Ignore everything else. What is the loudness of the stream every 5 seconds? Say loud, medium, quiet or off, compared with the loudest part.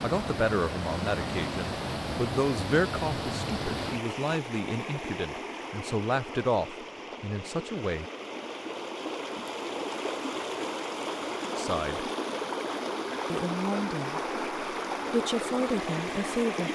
loud, medium, loud, loud.